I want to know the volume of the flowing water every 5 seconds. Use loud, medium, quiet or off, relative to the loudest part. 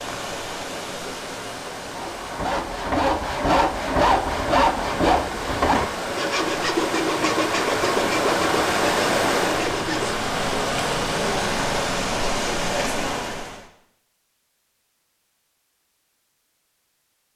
medium, loud, loud, off.